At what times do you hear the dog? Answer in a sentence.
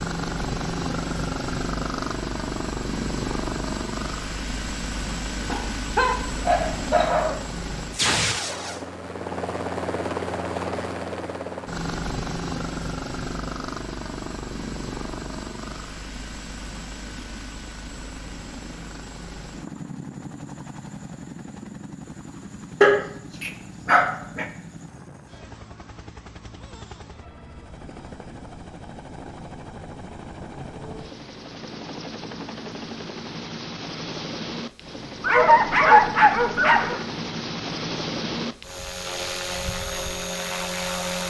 The dog can be heard from 5.5 to 7.4 s, from 22.8 to 24.4 s and from 35.2 to 37.0 s.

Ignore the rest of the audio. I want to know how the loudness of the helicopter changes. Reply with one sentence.
The loudness of the helicopter goes down, then up.